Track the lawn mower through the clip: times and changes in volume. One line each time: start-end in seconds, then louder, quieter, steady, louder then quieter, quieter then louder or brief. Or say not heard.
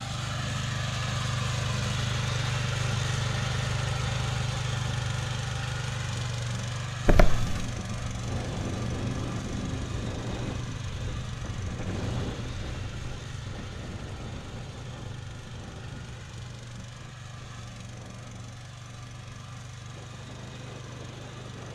0.0-21.7 quieter.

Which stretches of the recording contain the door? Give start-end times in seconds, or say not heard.
7.0-7.7.